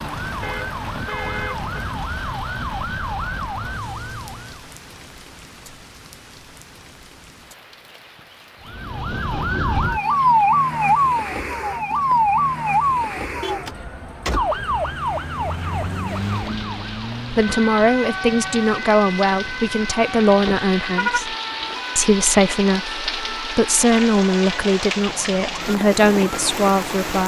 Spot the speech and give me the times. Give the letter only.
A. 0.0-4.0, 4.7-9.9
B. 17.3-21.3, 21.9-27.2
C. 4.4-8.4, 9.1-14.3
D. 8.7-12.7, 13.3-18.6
B.